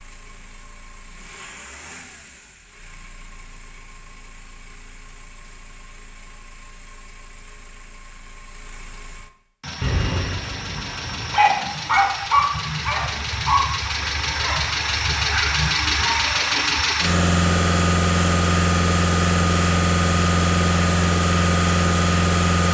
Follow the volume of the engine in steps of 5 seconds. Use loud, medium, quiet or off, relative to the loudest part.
quiet, quiet, medium, loud, loud.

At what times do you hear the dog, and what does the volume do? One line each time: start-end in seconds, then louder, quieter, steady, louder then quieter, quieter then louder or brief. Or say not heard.
9.8-16.1 louder then quieter.